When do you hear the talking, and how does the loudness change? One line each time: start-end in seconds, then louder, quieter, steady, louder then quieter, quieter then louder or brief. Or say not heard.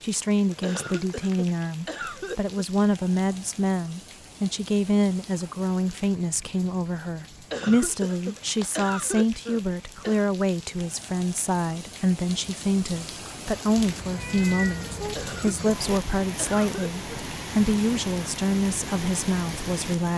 0.0-20.1 steady.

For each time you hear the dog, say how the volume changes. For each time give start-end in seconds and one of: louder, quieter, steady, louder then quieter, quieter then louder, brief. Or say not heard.
not heard.